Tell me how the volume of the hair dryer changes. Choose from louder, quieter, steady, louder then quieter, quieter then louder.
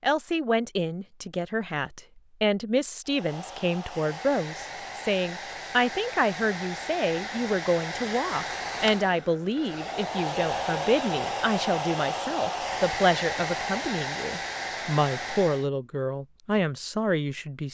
louder.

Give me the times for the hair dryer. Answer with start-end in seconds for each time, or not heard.
3.0-15.7.